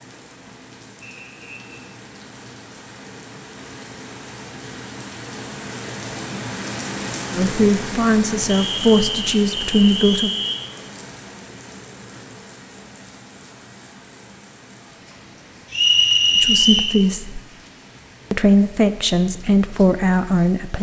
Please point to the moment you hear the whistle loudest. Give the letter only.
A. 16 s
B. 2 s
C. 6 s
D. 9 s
A.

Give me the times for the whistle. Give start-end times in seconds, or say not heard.
1.0-1.6, 8.4-10.6, 15.7-16.9.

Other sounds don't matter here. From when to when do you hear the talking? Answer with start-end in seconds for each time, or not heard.
7.3-10.3, 16.4-17.4, 18.3-20.7.